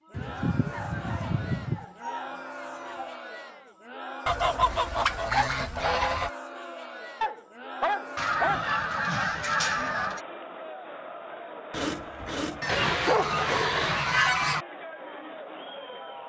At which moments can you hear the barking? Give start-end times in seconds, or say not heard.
0.7-3.2, 7.2-8.7, 11.7-14.1.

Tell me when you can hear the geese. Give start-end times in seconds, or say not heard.
0.1-1.9, 4.2-6.3, 8.2-10.2, 12.6-14.7.